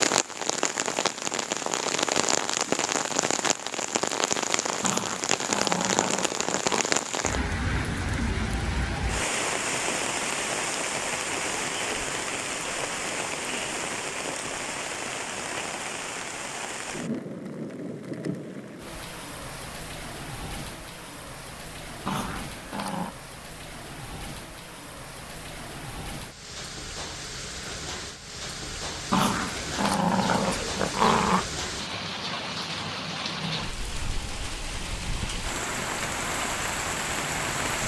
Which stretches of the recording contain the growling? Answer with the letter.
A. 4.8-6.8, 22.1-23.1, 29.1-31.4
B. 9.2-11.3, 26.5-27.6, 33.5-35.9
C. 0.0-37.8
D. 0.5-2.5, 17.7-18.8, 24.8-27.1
A.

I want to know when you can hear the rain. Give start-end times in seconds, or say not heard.
0.0-37.8.